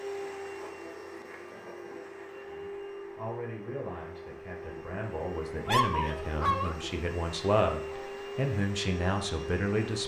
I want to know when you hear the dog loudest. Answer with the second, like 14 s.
6 s.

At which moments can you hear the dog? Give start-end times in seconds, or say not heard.
0.6-1.9, 5.7-6.8.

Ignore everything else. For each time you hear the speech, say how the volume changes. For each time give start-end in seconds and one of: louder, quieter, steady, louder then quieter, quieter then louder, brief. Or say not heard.
2.5-10.0 louder.